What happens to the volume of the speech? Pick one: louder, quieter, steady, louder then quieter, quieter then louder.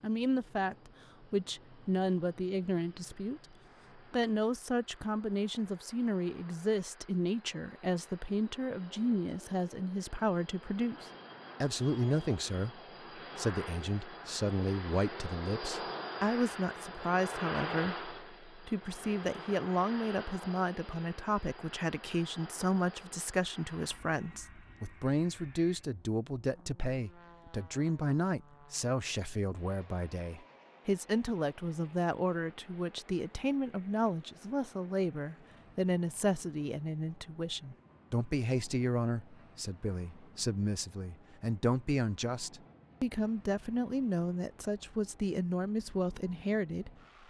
steady.